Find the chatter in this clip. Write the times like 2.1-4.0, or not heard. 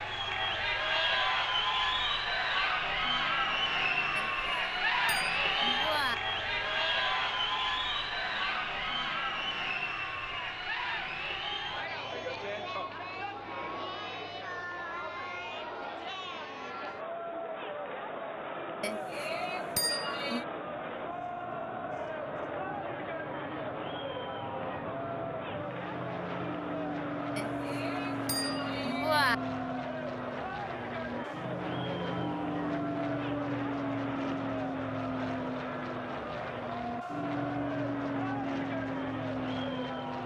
0.0-40.2.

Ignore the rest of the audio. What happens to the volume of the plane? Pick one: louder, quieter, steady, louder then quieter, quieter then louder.
louder.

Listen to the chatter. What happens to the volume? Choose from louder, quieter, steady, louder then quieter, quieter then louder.
quieter.